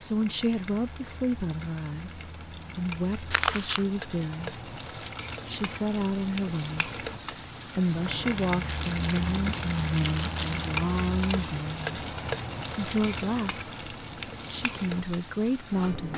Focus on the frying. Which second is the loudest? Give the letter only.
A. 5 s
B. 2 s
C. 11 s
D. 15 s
C.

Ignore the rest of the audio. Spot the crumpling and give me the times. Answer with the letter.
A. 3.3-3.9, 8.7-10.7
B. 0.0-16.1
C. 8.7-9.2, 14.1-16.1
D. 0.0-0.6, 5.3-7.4
A.